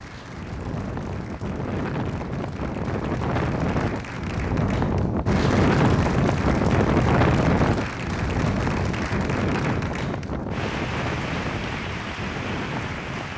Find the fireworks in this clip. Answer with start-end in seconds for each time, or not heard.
not heard.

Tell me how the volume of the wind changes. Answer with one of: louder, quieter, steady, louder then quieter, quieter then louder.
louder then quieter.